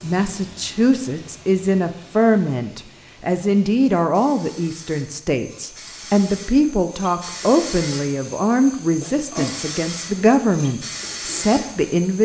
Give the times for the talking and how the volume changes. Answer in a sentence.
You can hear the talking from 0.0 to 12.2 s, at a steady volume.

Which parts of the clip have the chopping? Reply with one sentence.
You can't hear the chopping here.